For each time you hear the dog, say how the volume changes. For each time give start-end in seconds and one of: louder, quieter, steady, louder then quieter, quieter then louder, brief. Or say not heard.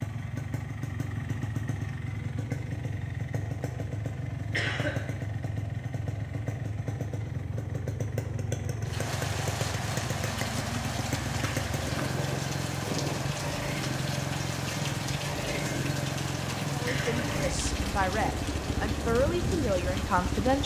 not heard.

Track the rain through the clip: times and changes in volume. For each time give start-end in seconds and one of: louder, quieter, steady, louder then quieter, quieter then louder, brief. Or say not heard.
8.8-20.6 steady.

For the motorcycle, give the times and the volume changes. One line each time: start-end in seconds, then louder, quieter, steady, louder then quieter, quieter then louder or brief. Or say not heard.
0.0-20.6 steady.